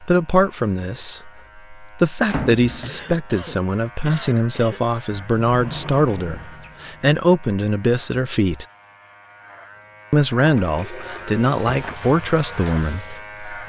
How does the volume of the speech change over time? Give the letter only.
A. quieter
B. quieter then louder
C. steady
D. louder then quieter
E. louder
C.